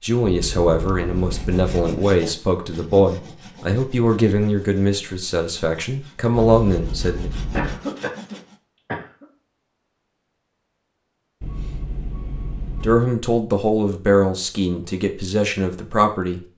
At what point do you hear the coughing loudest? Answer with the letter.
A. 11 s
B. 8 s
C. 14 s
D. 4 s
B.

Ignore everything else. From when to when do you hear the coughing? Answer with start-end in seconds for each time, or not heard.
7.5-9.2.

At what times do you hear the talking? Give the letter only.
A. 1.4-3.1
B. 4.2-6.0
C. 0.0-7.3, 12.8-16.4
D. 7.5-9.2
C.